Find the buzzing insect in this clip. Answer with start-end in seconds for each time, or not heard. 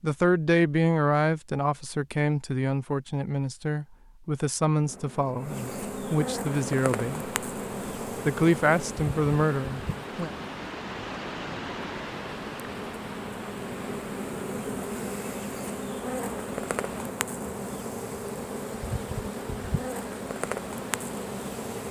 4.8-21.8.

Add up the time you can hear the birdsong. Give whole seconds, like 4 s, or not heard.
not heard.